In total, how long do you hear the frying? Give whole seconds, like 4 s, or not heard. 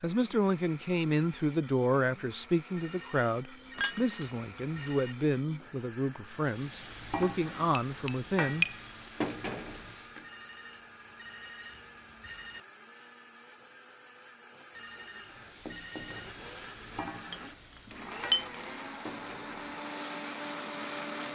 10 s.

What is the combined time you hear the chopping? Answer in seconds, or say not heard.
not heard.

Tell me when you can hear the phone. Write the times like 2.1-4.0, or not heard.
2.8-5.2, 10.2-12.7, 14.8-16.4.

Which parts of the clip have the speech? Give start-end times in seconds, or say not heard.
0.0-8.7.